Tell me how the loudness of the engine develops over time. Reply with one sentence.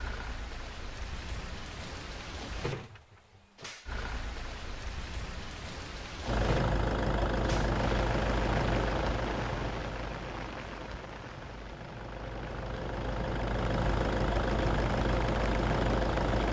The loudness of the engine goes down, then up.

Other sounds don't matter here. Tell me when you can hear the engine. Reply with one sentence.
The engine can be heard from 6.2 to 16.4 s.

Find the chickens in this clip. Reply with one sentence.
The chickens can't be heard in this clip.